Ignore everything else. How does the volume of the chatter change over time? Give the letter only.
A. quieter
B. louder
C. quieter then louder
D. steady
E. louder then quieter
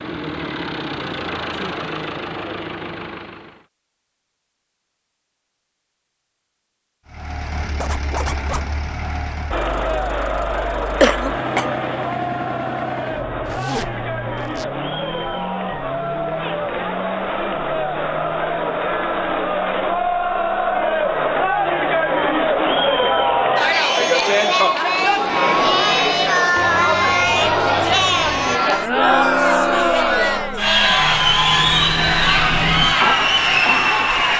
B.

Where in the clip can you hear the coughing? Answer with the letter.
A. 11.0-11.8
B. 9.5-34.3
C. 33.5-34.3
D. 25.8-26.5
A.